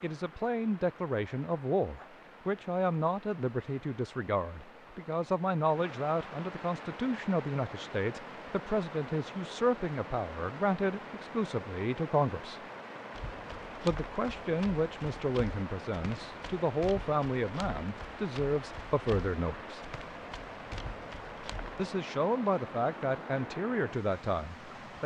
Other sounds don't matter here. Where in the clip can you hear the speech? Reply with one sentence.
The speech can be heard from 0.0 to 12.6 s, from 13.8 to 19.9 s and from 21.8 to 25.0 s.